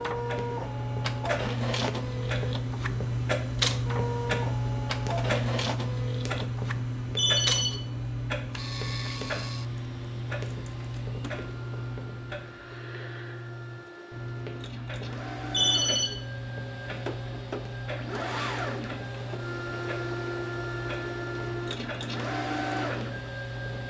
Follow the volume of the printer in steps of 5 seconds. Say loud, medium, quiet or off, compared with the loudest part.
loud, loud, quiet, loud, loud.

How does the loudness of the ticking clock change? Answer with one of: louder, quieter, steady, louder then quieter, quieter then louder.
quieter.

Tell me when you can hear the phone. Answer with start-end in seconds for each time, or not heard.
7.2-7.8, 15.5-16.1.